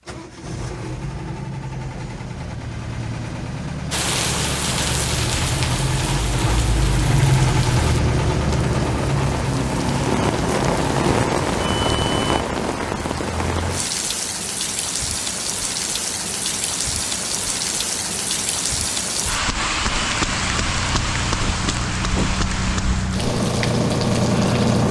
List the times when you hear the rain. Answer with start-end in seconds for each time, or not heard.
3.9-24.8.